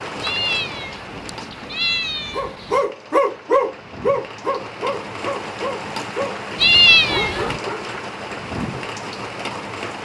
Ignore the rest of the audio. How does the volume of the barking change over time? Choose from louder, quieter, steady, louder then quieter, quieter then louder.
quieter.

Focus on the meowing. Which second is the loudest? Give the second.
7 s.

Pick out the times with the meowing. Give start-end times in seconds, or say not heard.
0.2-2.9, 6.5-7.6.